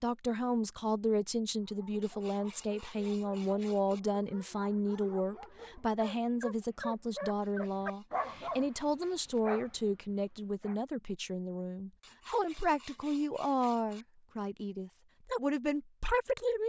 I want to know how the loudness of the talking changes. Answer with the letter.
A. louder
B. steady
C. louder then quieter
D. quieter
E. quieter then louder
B.